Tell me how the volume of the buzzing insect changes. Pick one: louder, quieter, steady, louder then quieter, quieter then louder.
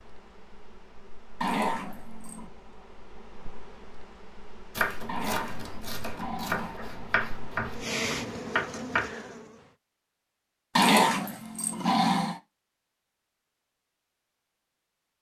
louder.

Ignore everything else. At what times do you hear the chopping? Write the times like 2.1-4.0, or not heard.
4.8-9.1.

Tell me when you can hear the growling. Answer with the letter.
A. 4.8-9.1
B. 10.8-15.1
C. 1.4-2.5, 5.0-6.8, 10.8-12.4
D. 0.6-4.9
C.